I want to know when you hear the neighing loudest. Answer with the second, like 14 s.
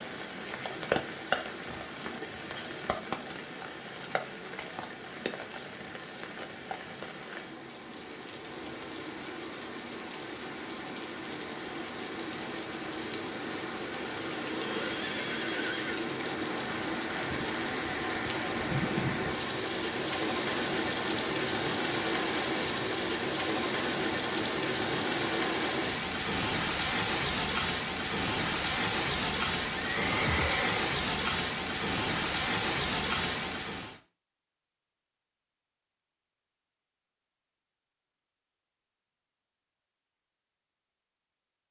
30 s.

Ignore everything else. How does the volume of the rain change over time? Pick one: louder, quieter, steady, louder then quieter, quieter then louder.
louder.